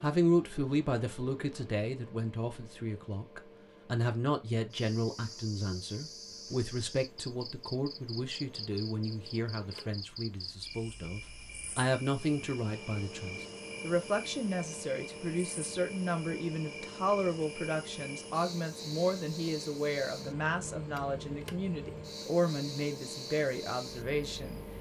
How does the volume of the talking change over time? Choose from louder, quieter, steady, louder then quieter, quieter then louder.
steady.